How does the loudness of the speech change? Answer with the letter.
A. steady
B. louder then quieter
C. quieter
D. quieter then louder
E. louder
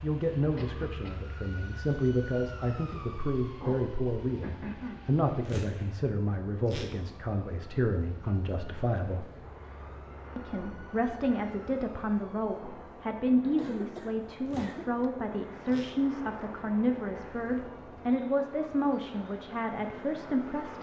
A.